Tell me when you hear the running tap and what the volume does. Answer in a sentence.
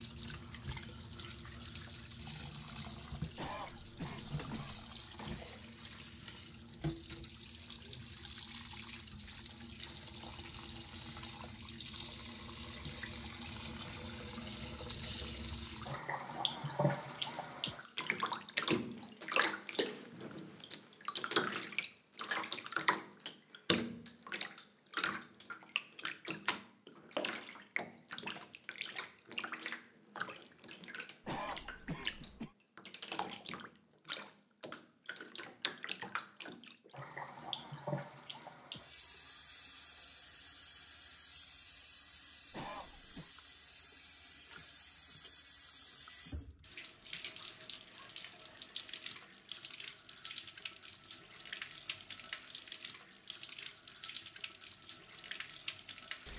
You can hear the running tap from 0.0 to 56.3 s, getting louder then quieter.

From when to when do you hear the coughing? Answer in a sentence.
The coughing can be heard from 3.4 to 4.8 s, from 31.2 to 32.5 s and from 42.5 to 43.3 s.